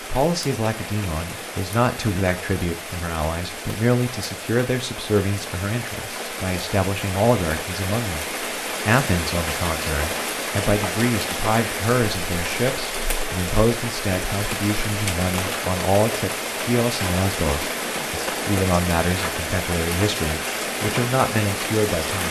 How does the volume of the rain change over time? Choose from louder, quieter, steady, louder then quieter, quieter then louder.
louder.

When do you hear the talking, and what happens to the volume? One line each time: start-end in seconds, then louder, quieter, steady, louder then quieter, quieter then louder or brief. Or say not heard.
0.0-22.2 steady.